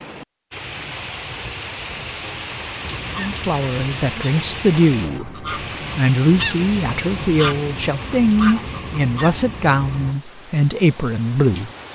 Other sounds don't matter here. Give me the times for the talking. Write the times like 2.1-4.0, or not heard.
3.1-11.7.